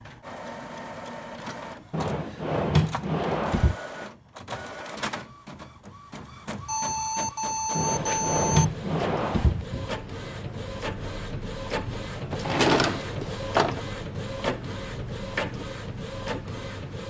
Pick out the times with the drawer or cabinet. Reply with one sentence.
You can hear the drawer or cabinet from 1.9 to 3.8 s, from 7.8 to 9.7 s and from 12.3 to 13.8 s.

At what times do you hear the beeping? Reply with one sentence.
You can hear the beeping from 6.7 to 8.7 s.